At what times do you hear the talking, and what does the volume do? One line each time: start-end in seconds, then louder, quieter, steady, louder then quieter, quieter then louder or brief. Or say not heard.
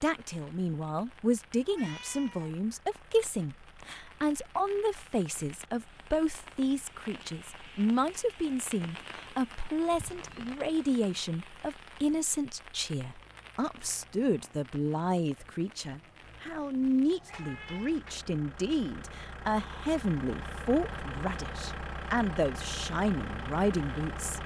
0.0-24.4 steady.